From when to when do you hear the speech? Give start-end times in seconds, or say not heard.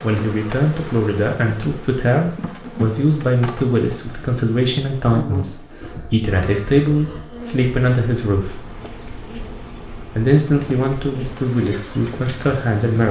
0.0-8.6, 10.2-13.0.